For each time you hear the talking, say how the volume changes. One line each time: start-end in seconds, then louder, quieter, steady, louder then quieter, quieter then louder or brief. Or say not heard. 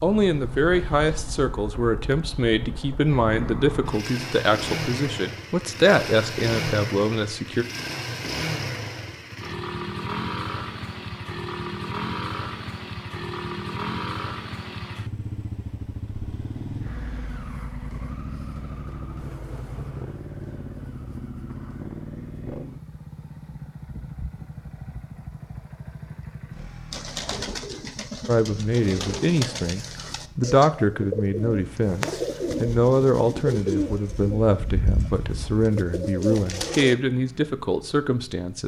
0.0-7.7 steady
28.2-38.6 steady.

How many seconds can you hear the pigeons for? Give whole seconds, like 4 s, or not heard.
10 s.